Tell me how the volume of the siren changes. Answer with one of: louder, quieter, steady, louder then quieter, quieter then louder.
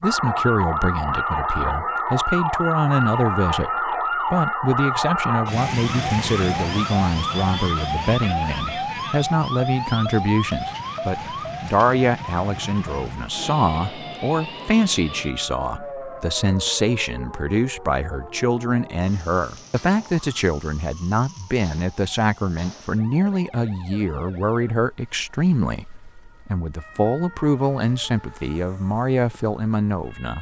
quieter.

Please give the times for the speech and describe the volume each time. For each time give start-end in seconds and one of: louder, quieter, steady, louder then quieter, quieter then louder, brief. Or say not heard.
0.0-30.3 steady.